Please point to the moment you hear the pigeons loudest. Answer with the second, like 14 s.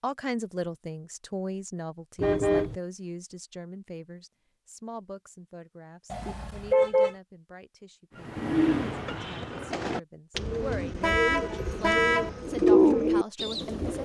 13 s.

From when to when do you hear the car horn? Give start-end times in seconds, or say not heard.
2.1-2.8, 6.1-7.2, 11.0-12.3.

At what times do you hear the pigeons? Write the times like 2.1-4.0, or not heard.
8.2-14.0.